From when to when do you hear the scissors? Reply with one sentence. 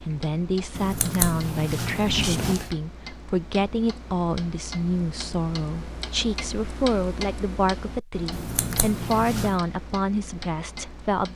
The scissors can be heard from 0.7 to 2.7 s and from 8.3 to 9.6 s.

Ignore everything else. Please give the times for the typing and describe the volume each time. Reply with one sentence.
You can't hear the typing here.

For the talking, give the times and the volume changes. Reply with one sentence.
The talking can be heard from 0.0 to 11.3 s, at a steady volume.